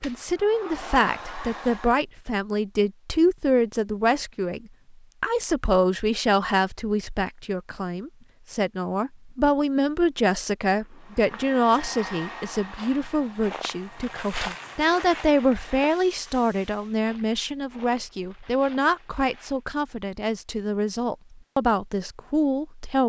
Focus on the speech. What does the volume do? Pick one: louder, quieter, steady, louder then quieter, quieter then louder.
steady.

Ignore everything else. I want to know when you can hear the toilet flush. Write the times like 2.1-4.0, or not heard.
not heard.